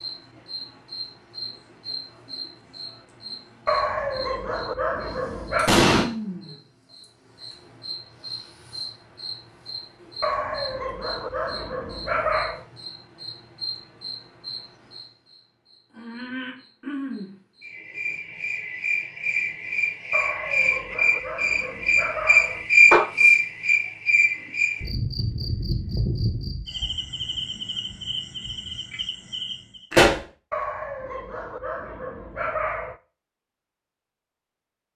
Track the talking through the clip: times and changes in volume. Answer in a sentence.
The talking can't be heard in this clip.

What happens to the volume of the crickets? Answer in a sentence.
The volume of the crickets goes up, then down.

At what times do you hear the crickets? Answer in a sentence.
You can hear the crickets from 0.0 to 29.9 s.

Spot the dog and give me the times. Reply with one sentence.
You can hear the dog from 3.6 to 5.8 s, from 10.2 to 12.7 s, from 20.1 to 22.6 s and from 30.5 to 33.0 s.